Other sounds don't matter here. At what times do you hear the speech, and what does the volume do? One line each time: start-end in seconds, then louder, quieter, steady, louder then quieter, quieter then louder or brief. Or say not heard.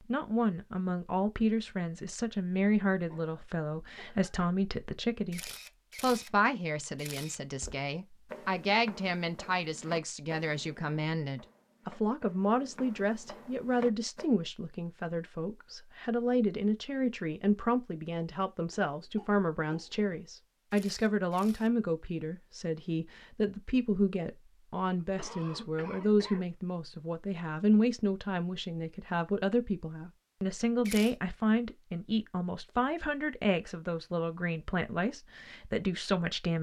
0.0-36.5 steady.